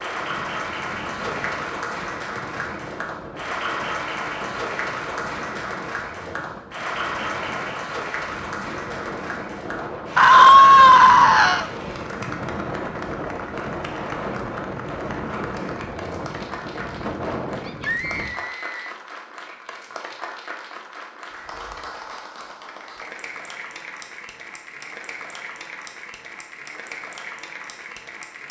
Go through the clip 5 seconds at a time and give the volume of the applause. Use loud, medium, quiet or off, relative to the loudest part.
loud, loud, medium, medium, medium, medium.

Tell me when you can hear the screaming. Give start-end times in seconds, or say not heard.
10.2-11.7, 17.6-18.9.